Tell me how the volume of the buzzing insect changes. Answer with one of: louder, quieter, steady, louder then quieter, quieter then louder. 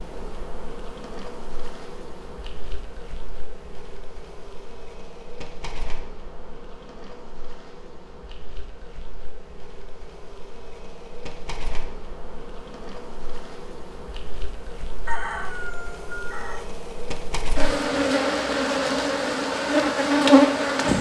louder.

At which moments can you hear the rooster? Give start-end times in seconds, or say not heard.
15.1-16.6.